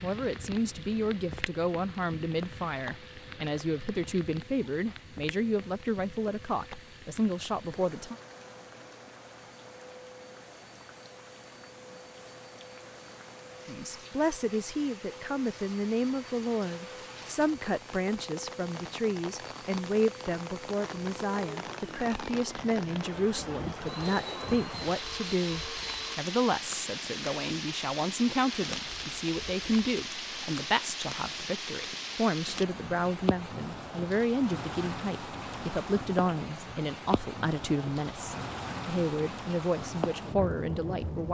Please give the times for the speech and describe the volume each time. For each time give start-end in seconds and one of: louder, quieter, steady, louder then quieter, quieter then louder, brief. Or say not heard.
0.0-8.2 steady
13.7-41.2 steady.